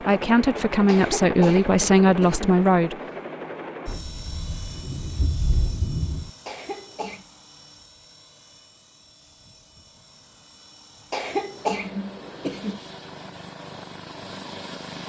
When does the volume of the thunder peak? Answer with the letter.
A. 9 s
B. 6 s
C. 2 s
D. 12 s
B.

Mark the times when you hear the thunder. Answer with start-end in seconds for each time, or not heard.
3.9-6.3.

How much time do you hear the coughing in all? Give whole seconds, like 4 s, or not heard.
4 s.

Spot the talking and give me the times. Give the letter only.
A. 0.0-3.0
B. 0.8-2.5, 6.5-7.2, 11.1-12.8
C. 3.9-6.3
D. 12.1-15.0
A.